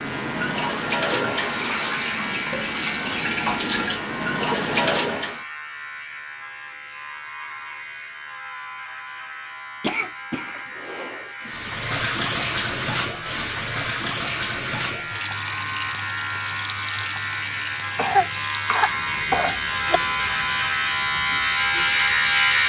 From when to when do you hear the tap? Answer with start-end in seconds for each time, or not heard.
0.0-5.5, 11.4-22.6.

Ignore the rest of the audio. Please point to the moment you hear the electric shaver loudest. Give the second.
22 s.